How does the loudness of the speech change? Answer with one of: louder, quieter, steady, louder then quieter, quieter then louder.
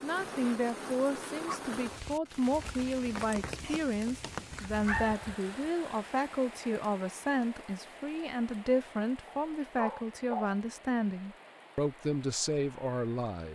steady.